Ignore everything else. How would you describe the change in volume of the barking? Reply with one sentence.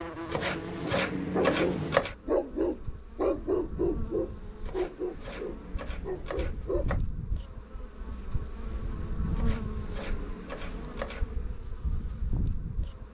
The loudness of the barking goes down.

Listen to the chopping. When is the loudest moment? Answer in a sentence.
The loudest moment of the chopping is at 2 seconds.